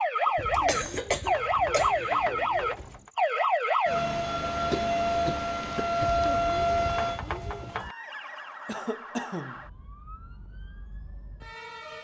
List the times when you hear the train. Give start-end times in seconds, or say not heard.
not heard.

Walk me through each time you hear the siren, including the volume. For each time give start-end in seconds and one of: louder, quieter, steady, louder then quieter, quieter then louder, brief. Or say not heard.
0.0-11.9 quieter.